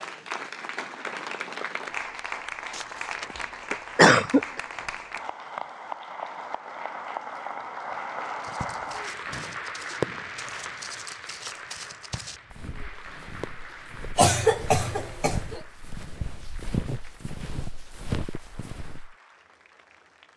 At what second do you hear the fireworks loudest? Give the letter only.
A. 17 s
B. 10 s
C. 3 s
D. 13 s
B.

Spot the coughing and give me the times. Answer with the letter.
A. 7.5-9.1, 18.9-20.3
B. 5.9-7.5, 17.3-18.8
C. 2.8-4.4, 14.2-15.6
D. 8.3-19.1
C.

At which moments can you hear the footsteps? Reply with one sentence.
You can hear the footsteps from 8.3 to 19.1 s.